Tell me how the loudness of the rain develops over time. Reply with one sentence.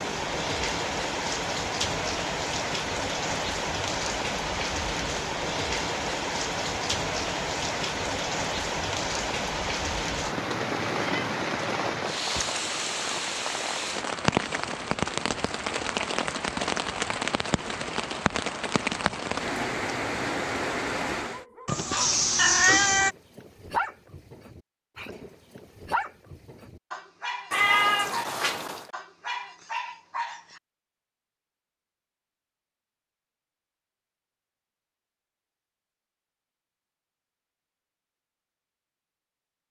The volume of the rain stays about the same.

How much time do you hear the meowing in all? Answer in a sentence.
You can hear the meowing for 4 seconds altogether.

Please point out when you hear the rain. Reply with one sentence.
You can hear the rain from 0.0 to 21.4 s.